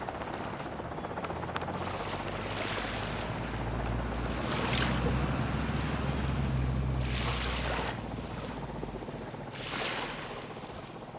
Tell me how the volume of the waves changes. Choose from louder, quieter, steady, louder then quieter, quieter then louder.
louder then quieter.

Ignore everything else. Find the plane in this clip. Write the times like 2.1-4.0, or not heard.
0.0-11.1.